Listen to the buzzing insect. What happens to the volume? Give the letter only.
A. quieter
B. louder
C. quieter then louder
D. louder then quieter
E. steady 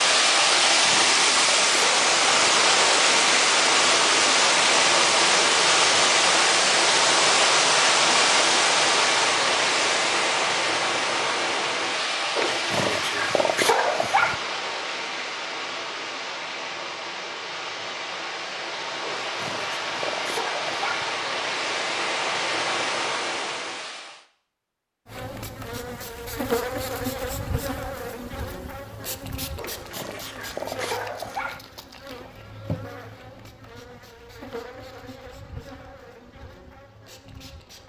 A.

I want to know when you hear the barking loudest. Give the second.
14 s.